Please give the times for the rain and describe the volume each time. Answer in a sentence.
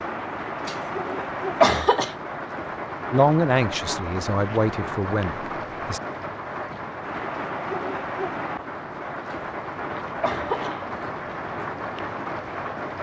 The rain can be heard from 0.0 to 12.9 s, at a steady volume.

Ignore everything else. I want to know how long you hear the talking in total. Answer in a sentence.
The talking can be heard for 3 seconds in total.